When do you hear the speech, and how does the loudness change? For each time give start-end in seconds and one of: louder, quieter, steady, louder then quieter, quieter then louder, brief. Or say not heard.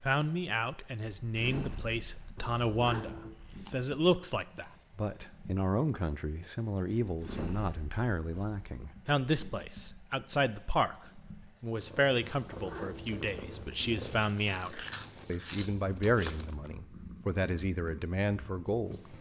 0.0-19.1 steady.